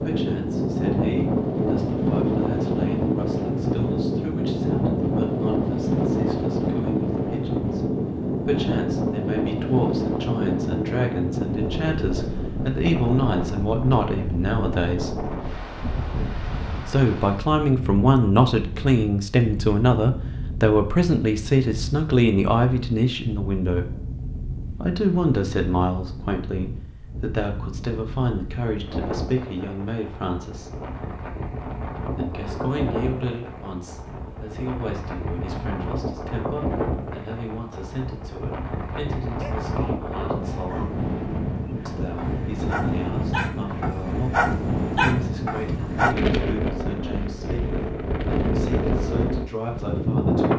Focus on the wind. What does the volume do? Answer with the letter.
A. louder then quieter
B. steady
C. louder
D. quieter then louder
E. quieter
D.